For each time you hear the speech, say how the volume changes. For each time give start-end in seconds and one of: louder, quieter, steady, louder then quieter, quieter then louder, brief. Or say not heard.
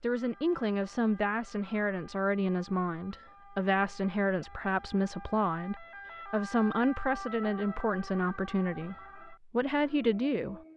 0.0-10.6 steady.